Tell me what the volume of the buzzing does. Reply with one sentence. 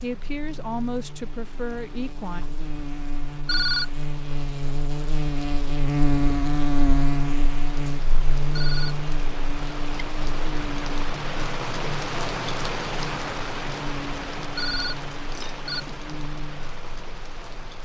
The loudness of the buzzing goes up, then down.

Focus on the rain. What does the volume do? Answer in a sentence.
The loudness of the rain goes up, then down.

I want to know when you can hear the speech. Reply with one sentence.
The speech can be heard from 0.0 to 2.5 s.